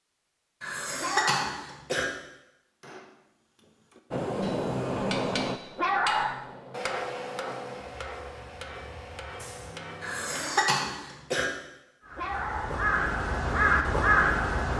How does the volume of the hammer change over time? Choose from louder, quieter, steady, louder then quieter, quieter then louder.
louder then quieter.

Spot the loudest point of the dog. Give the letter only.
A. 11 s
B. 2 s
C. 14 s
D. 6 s
D.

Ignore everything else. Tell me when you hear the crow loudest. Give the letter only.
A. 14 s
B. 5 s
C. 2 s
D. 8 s
A.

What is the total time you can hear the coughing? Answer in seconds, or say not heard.
3 s.